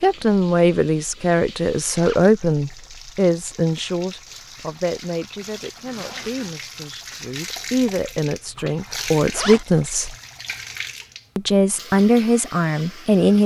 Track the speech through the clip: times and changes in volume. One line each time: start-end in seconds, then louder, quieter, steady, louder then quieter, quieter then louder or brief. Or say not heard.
0.0-10.2 quieter then louder
11.3-13.4 brief.